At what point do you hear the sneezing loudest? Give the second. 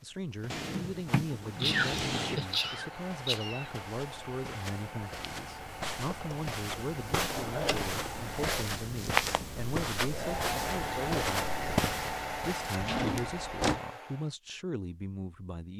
2 s.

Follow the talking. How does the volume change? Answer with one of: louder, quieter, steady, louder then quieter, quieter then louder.
steady.